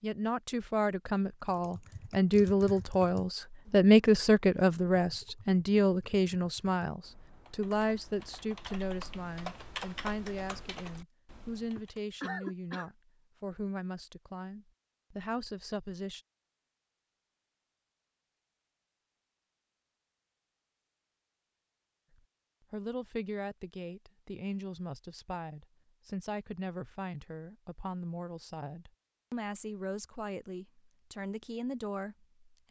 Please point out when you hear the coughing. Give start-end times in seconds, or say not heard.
11.8-12.9.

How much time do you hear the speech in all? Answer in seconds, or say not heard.
26 s.